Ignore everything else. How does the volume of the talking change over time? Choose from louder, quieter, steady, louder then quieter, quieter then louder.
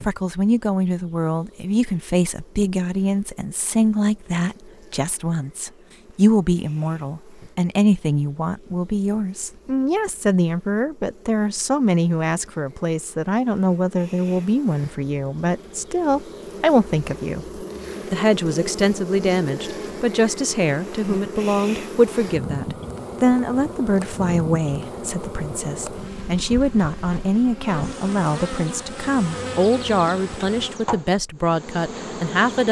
steady.